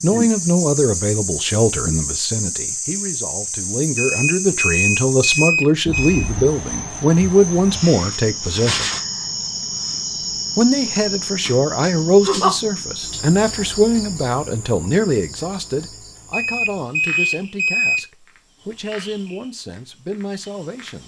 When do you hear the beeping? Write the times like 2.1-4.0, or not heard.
4.0-6.3, 16.3-18.1.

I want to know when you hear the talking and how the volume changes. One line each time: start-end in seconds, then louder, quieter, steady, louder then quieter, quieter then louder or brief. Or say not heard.
0.0-8.9 quieter then louder
10.6-21.0 quieter.